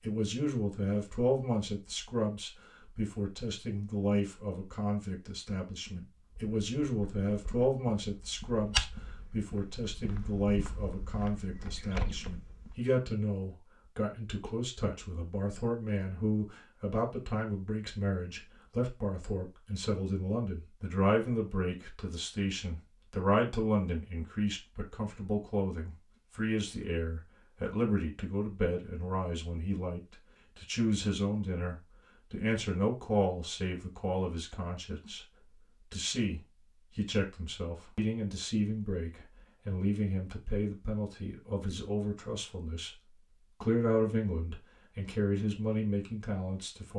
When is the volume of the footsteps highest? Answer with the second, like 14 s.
9 s.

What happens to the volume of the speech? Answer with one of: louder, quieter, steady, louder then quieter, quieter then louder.
steady.